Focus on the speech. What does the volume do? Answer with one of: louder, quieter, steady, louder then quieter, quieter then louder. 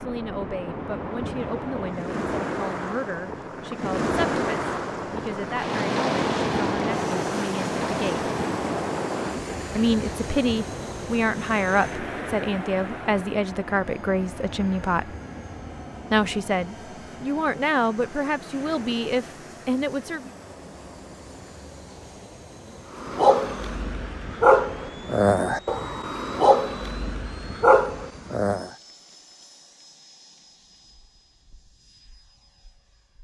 louder.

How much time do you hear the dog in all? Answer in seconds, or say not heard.
6 s.